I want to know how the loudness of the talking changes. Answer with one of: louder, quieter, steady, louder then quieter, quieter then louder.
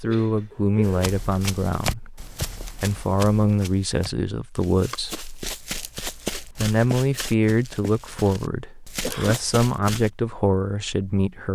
steady.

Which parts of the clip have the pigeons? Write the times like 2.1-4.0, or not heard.
not heard.